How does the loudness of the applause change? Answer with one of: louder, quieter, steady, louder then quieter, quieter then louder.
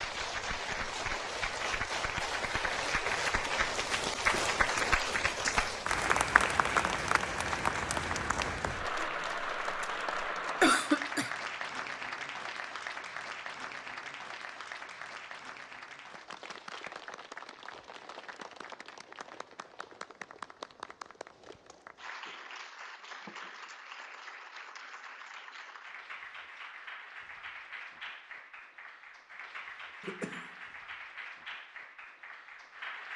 quieter.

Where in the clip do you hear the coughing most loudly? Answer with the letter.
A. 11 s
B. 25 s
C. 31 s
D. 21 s
A.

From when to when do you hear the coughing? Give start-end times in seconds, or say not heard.
10.6-11.3, 30.0-30.5.